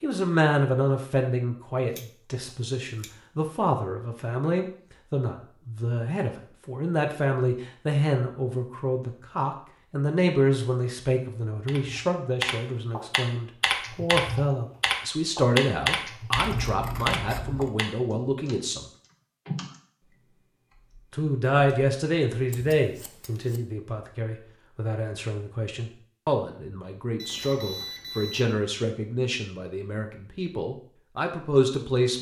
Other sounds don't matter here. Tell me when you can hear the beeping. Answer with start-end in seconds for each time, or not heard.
27.1-28.6.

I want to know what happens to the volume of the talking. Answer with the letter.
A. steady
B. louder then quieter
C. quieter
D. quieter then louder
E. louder
A.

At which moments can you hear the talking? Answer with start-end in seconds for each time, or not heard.
0.0-18.9, 21.1-32.1.